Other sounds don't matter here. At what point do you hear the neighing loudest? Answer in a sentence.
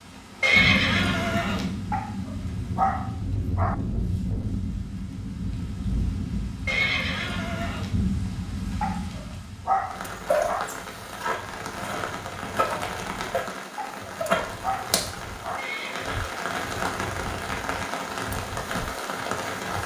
The volume of the neighing peaks at 1 second.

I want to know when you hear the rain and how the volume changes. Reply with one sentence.
The rain can be heard from 0.0 to 19.8 s, at a steady volume.